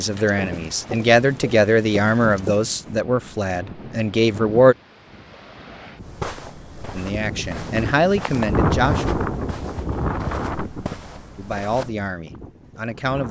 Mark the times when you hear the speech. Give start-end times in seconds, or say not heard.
0.0-4.8, 6.9-9.2, 11.3-13.2.